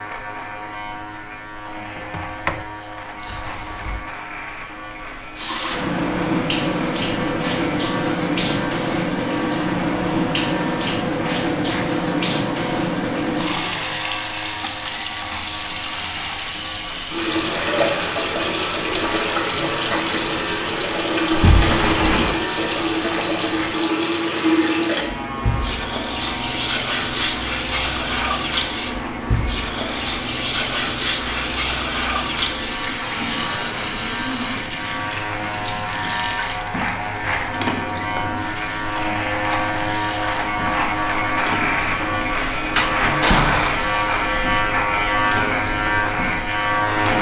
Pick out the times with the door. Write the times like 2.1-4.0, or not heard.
1.9-2.6, 3.2-4.0, 21.3-22.4, 42.8-43.9.